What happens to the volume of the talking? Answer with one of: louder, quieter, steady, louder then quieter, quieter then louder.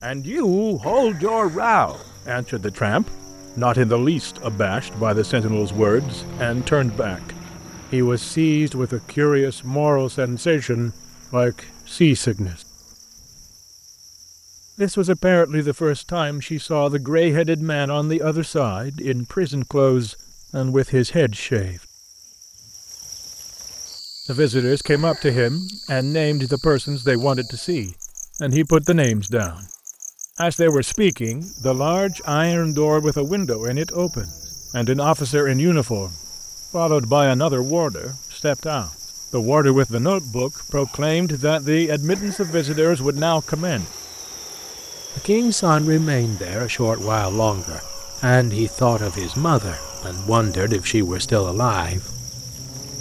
steady.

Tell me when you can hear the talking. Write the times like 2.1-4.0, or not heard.
0.0-12.6, 14.8-21.8, 24.2-29.6, 30.4-43.9, 45.1-52.1.